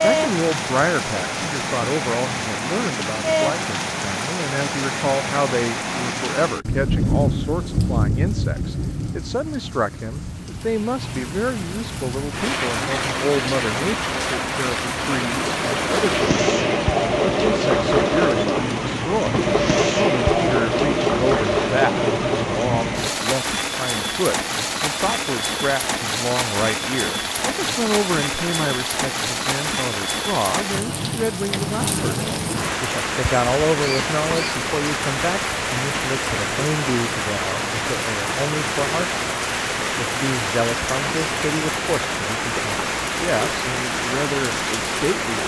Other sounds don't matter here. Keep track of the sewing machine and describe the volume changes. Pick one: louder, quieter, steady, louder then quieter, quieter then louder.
steady.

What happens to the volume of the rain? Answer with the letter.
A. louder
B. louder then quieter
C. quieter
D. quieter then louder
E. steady
E.